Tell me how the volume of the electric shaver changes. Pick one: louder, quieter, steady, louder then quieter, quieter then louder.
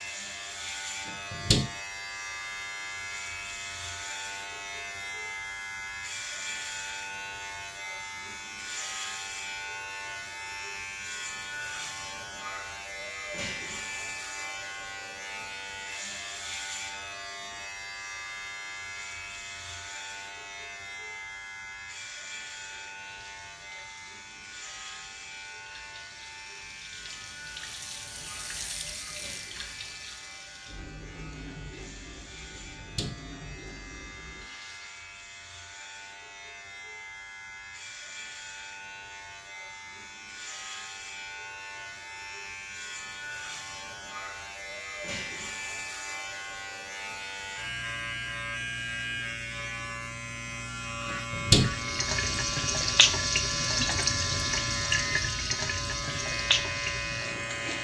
quieter then louder.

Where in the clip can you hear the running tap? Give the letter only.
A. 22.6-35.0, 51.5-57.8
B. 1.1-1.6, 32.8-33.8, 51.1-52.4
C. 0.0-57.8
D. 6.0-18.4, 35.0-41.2
A.